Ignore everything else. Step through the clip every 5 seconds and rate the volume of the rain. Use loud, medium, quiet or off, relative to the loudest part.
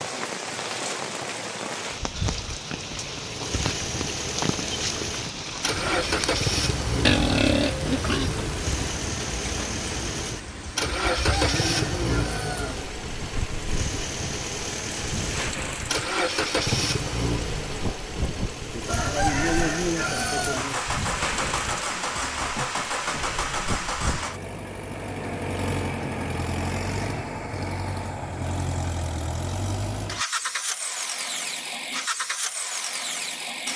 loud, loud, medium, loud, loud, off, off.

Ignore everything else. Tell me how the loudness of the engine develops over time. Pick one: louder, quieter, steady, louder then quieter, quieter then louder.
steady.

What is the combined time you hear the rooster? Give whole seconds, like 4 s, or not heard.
4 s.